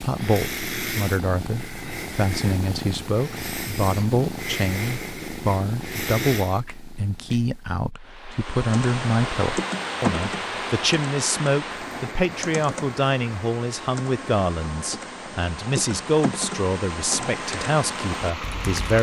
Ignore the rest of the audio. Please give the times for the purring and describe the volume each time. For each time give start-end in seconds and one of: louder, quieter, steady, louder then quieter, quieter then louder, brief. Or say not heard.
0.0-7.9 steady.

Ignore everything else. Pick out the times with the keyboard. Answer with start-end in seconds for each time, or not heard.
8.3-18.9.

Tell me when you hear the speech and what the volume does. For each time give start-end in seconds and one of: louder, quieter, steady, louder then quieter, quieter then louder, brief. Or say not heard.
0.0-18.9 steady.